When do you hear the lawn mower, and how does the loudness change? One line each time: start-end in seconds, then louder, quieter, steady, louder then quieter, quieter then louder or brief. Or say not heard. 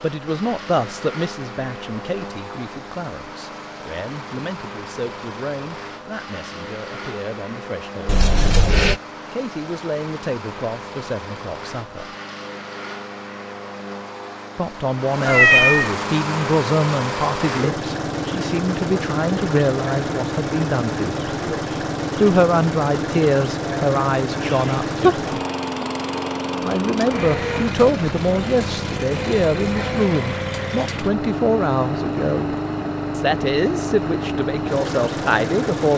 0.0-35.9 louder.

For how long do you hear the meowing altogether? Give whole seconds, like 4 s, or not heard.
2 s.